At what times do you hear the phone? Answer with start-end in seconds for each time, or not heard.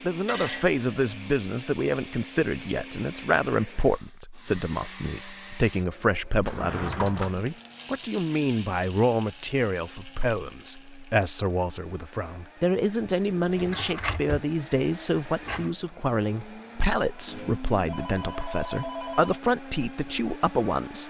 0.2-1.2, 17.2-19.4.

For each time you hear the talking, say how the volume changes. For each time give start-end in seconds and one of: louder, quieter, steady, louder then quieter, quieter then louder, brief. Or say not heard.
0.0-21.0 steady.